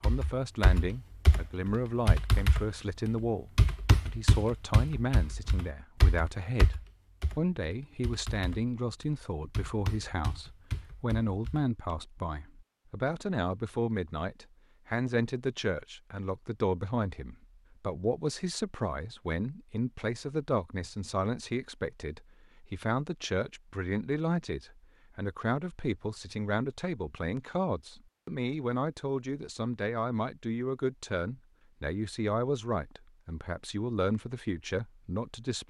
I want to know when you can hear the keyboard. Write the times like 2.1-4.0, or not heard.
0.0-12.0.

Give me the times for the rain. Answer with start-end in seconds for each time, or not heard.
not heard.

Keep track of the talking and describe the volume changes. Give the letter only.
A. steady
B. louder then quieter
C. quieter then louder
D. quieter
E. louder
A.